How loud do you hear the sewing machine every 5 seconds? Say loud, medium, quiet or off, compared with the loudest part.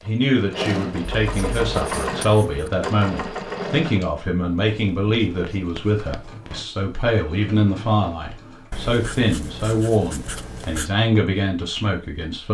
loud, quiet, off.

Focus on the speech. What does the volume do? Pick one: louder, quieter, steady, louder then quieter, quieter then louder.
steady.